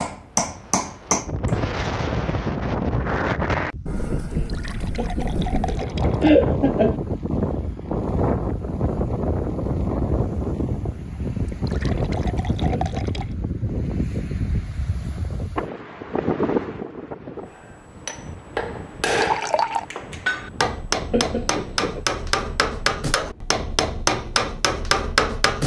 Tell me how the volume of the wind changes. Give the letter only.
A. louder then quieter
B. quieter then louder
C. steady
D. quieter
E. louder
D.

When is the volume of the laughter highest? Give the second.
6 s.